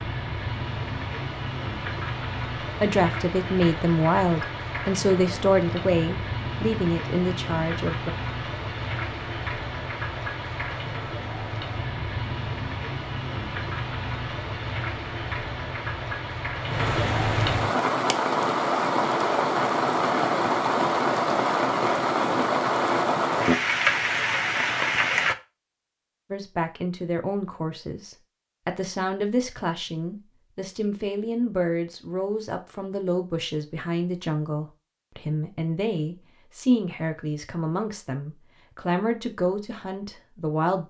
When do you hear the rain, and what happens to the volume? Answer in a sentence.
You can hear the rain from 0.0 to 25.4 s, getting louder.